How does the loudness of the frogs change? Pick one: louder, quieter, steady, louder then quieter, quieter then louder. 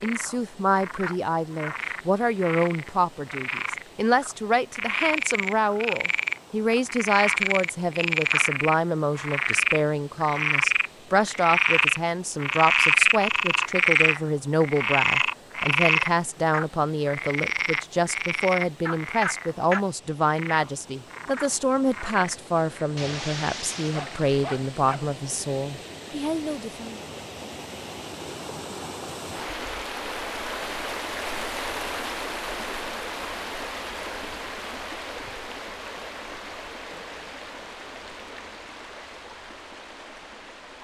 louder then quieter.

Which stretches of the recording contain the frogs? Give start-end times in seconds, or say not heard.
0.0-22.9.